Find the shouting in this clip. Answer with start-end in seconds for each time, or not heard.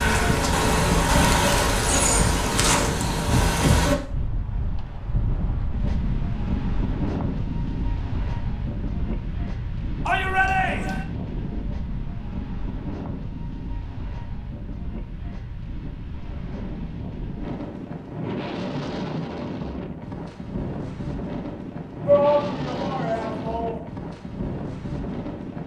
10.1-11.1, 22.1-23.9.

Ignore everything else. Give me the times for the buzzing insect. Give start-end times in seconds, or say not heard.
0.0-4.0.